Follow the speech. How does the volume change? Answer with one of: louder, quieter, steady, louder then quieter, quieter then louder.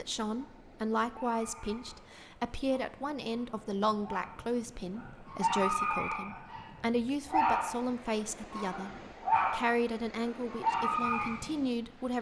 steady.